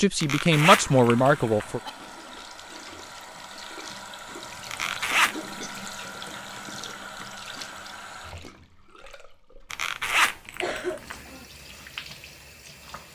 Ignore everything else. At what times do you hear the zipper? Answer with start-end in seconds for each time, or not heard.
0.2-1.6, 4.7-5.3, 9.7-11.2.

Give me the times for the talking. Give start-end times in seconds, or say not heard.
0.0-1.8.